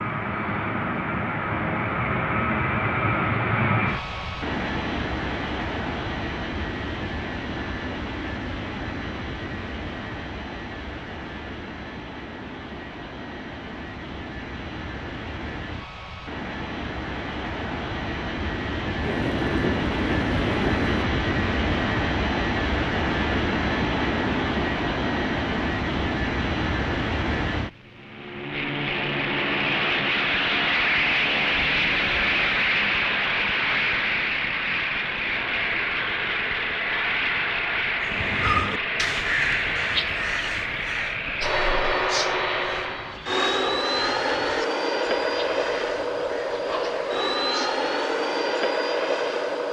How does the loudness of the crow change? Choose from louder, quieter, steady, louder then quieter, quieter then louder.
quieter.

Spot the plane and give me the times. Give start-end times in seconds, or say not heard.
0.0-49.6.